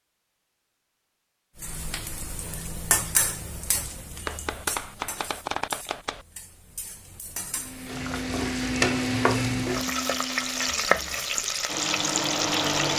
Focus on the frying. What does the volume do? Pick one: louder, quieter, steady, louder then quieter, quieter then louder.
quieter then louder.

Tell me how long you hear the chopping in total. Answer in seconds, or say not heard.
2 s.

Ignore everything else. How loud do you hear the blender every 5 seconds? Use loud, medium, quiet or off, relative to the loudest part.
off, loud, loud.